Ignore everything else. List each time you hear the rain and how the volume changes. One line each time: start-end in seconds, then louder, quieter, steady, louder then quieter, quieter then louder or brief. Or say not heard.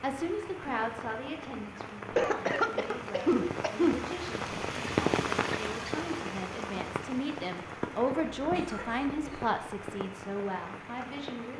0.0-11.5 louder then quieter.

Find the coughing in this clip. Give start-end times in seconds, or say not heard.
2.1-4.0, 8.4-9.4.